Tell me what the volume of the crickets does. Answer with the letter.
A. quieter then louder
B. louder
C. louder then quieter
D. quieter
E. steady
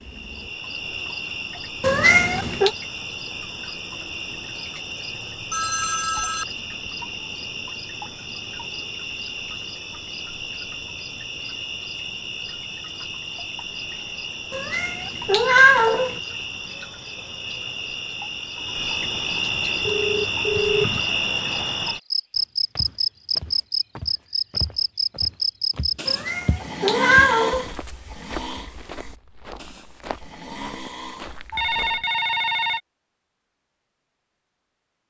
B.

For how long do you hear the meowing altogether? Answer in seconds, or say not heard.
4 s.